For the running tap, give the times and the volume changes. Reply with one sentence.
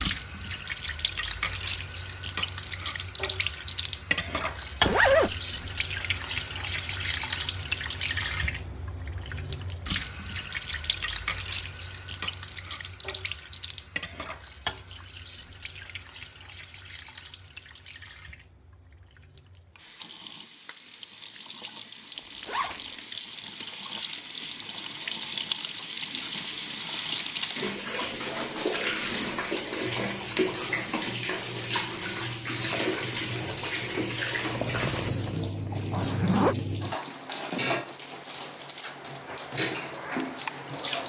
The running tap can be heard from 0.0 to 41.0 s, getting quieter then louder.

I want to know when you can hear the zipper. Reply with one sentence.
The zipper can be heard from 4.8 to 5.3 s, from 22.1 to 22.9 s and from 34.4 to 36.5 s.